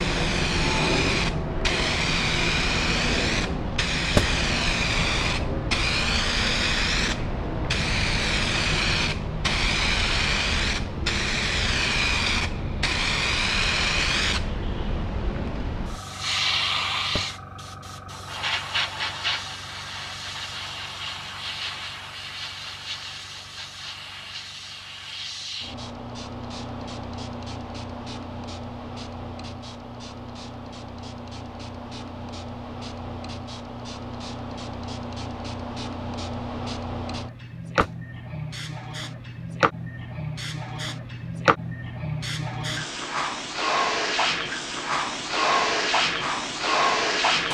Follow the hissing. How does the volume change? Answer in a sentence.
The volume of the hissing goes down, then up.